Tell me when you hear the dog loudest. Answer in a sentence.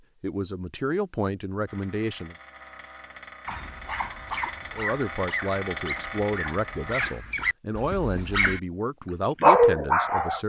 The loudest moment of the dog is at 10 seconds.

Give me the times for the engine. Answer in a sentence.
The engine can be heard from 1.6 to 7.2 s.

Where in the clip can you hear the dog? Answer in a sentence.
You can hear the dog from 3.5 to 8.6 s and from 9.4 to 10.4 s.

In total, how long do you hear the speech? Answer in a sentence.
The speech can be heard for 8 seconds in total.